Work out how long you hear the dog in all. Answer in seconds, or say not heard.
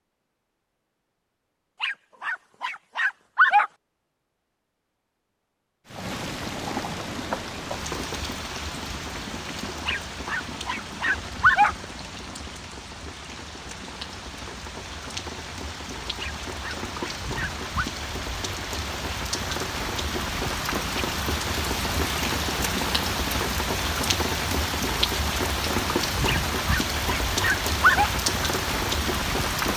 7 s.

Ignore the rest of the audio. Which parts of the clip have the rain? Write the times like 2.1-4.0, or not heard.
5.8-29.7.